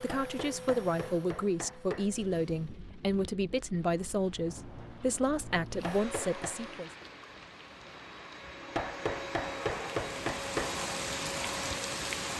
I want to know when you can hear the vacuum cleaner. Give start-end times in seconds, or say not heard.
0.0-2.8, 5.8-12.3.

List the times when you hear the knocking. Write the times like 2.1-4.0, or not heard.
0.1-2.1, 5.8-6.5, 8.8-10.7.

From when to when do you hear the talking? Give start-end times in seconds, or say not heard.
0.0-6.9.